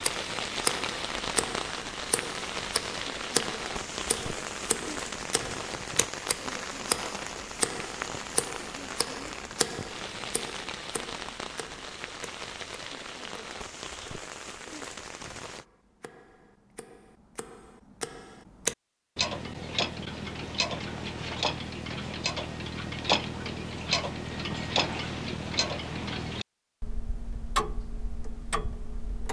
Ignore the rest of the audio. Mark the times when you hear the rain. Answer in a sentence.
The rain can be heard from 0.0 to 15.7 s.